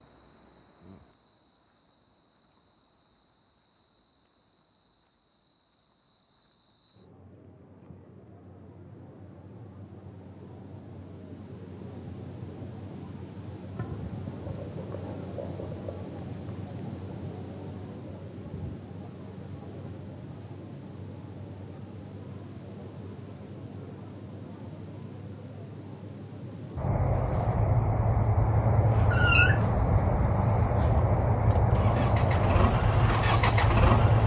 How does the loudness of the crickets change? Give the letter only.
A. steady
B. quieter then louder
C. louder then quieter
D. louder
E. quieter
D.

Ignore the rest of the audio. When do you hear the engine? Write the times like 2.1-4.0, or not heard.
30.9-34.2.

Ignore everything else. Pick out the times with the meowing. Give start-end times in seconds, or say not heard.
29.1-29.6.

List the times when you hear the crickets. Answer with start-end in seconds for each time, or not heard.
0.0-34.2.